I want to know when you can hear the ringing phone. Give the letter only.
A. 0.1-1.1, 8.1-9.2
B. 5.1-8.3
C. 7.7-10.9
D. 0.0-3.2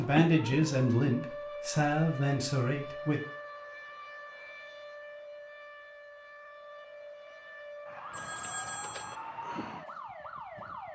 A.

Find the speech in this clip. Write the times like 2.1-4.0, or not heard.
0.0-3.2.